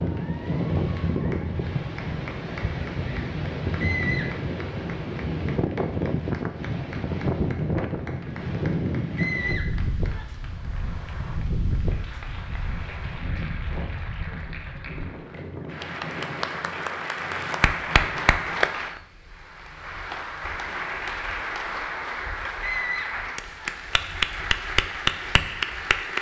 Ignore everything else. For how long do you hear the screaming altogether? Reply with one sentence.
You can hear the screaming for 3 seconds altogether.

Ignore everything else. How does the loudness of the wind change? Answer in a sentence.
The loudness of the wind goes down.